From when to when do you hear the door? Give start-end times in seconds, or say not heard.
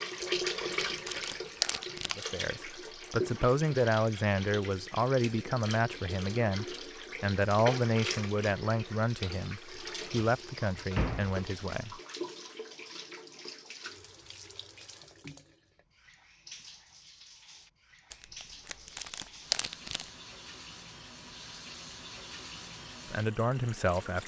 10.2-11.4.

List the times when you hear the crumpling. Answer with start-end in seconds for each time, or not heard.
0.2-2.1, 18.1-20.1.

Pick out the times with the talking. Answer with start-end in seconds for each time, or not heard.
2.1-11.9, 23.1-24.2.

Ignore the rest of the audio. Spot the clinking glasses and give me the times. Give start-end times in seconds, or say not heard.
not heard.